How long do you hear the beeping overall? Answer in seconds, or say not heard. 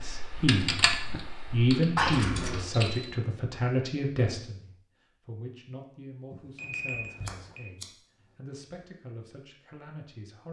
2 s.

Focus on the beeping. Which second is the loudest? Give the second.
7 s.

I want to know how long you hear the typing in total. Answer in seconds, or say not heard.
3 s.